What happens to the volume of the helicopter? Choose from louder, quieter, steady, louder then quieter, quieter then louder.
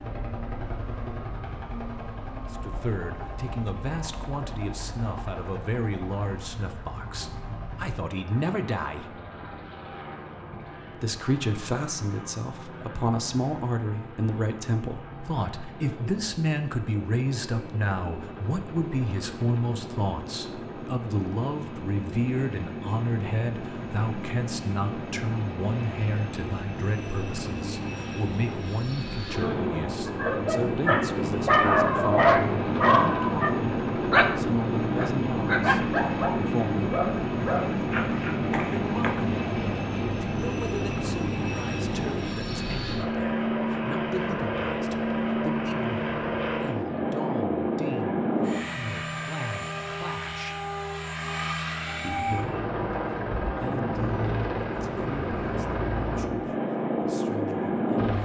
louder.